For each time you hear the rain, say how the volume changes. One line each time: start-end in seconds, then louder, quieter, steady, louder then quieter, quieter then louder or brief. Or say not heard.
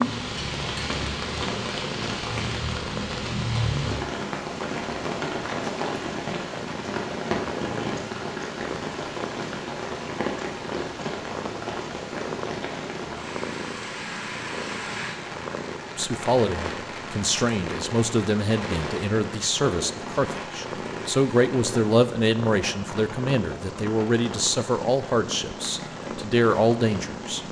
0.0-27.4 quieter.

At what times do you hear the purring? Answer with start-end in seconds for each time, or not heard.
0.0-27.4.